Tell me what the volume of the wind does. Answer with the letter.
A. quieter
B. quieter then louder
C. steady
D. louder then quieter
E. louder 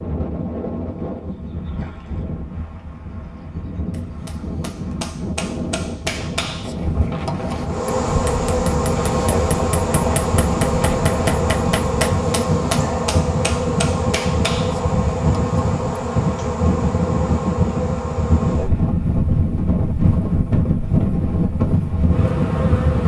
E.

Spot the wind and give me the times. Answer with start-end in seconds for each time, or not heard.
0.0-23.0.